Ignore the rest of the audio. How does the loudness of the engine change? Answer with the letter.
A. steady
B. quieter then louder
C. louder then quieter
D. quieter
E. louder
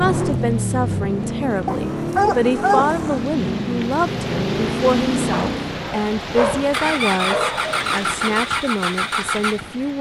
A.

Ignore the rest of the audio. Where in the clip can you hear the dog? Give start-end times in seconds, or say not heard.
1.6-3.2, 5.3-7.9.